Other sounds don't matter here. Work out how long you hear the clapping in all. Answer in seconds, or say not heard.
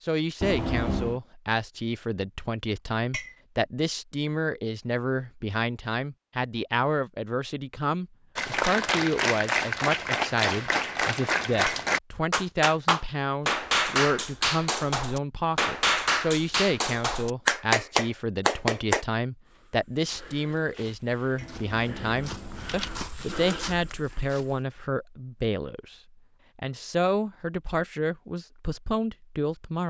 11 s.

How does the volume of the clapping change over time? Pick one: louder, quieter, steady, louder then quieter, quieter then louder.
steady.